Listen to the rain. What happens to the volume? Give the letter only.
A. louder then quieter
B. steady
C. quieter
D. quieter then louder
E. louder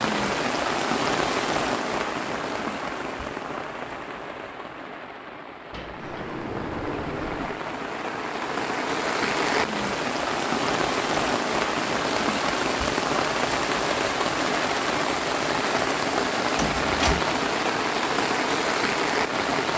D.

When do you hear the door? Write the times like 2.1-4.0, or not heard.
5.7-7.6, 16.6-17.2.